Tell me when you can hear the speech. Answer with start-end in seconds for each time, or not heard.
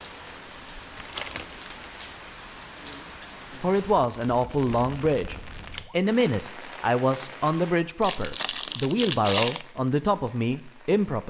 3.6-11.2.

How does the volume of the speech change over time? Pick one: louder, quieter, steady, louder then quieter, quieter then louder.
steady.